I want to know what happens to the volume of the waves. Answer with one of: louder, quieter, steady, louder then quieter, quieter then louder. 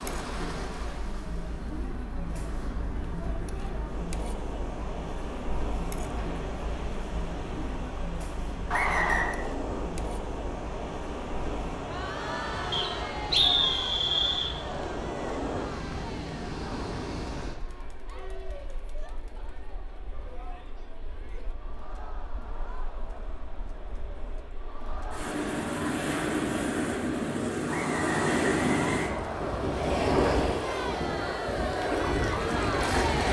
louder.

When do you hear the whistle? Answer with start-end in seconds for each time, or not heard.
8.7-9.3, 12.7-14.5, 27.6-29.7.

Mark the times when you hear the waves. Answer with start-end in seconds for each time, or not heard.
0.0-33.2.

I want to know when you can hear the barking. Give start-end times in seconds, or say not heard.
not heard.